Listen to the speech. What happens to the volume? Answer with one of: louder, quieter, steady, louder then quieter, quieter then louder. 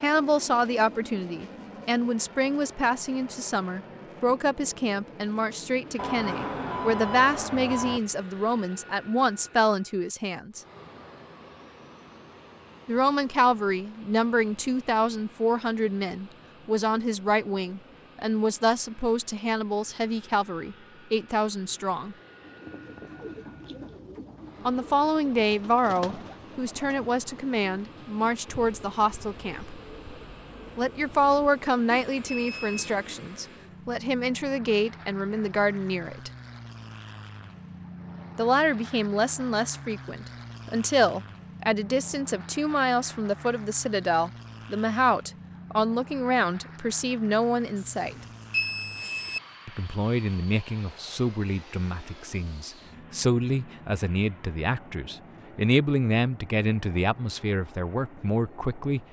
steady.